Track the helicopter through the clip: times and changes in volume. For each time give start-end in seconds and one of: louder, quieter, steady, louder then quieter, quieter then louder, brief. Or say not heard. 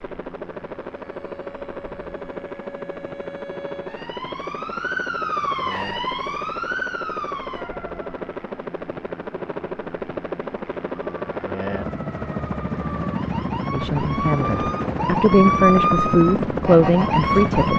0.0-17.7 louder.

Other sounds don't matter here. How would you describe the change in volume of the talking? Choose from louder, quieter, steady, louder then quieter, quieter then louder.
louder.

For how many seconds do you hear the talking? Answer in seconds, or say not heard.
4 s.